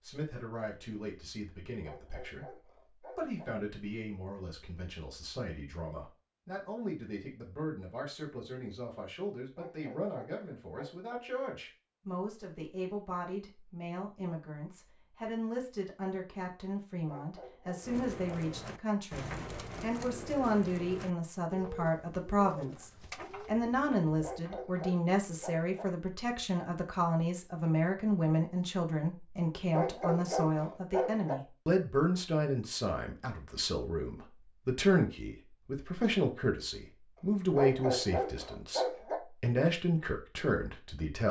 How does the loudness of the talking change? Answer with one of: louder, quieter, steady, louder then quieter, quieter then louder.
louder.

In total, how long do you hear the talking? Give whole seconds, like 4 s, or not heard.
41 s.